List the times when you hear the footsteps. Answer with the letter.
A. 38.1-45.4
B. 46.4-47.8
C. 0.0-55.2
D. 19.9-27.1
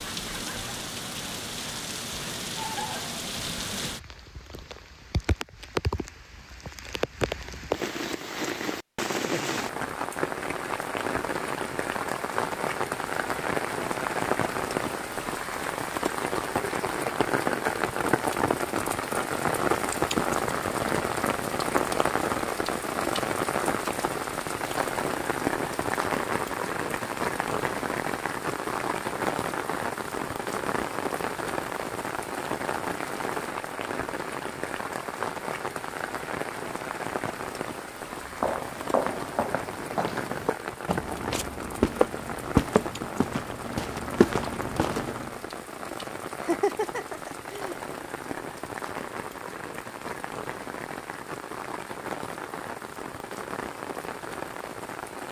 A.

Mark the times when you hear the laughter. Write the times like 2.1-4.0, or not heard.
46.4-47.8.